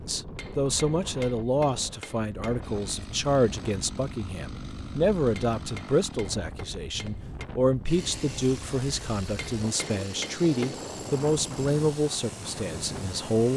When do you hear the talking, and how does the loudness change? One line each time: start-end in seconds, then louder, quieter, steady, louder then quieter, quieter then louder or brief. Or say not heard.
0.0-13.5 steady.